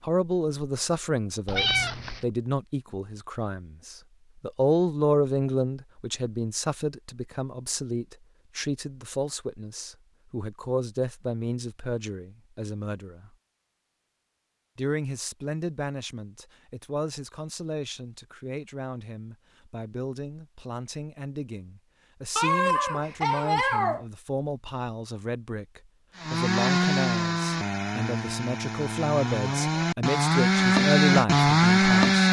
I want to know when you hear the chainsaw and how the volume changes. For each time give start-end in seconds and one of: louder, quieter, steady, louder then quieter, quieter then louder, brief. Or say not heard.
26.1-32.2 quieter then louder.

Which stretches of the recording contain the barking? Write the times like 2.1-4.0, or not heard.
22.4-24.1.